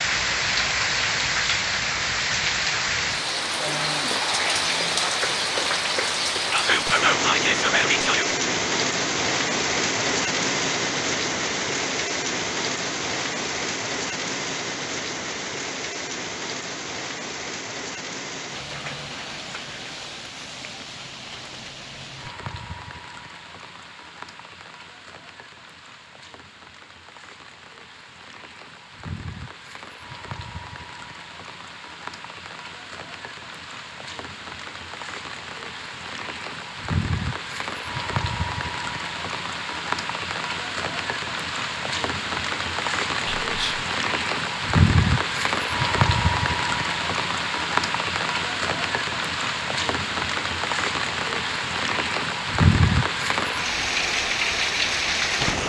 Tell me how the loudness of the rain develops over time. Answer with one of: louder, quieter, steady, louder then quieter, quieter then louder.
quieter then louder.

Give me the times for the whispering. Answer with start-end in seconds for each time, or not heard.
6.5-8.3, 43.4-43.9.